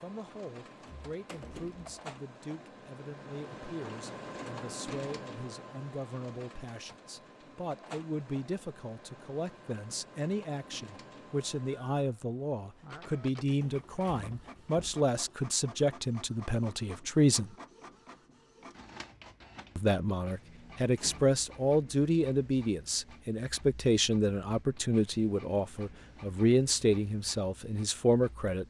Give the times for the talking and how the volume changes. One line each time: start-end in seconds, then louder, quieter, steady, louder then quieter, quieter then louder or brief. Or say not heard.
0.0-17.6 louder
19.8-28.6 steady.